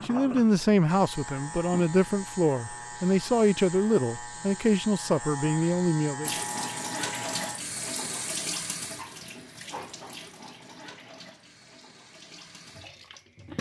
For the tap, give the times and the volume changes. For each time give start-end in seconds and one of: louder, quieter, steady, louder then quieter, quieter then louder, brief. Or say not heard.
6.2-13.5 quieter.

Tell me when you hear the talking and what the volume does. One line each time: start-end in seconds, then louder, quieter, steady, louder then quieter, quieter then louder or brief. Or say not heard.
0.0-6.3 steady.